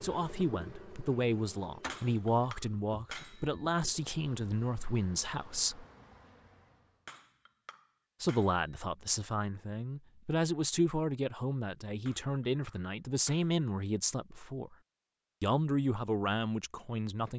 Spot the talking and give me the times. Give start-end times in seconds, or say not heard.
0.0-5.8, 8.2-14.8, 15.4-17.3.